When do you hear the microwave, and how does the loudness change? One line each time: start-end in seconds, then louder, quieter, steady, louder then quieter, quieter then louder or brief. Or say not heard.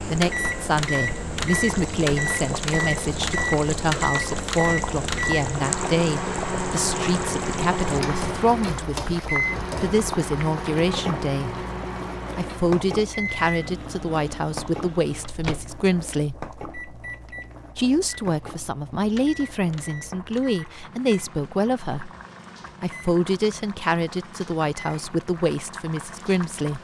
0.0-26.8 quieter.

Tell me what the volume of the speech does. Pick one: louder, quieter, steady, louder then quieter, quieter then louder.
steady.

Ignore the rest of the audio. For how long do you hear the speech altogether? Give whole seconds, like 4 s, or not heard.
24 s.